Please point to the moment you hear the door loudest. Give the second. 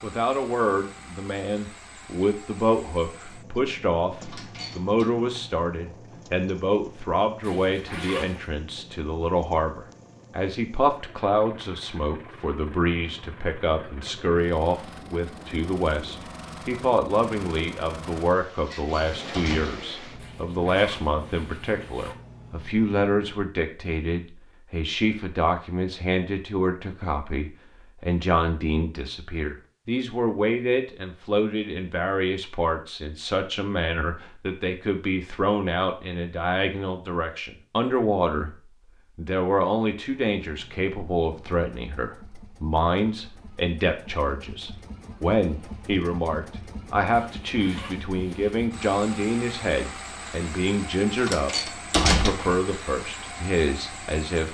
52 s.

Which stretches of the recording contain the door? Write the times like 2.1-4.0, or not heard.
4.2-5.0, 18.6-19.7, 51.1-52.6.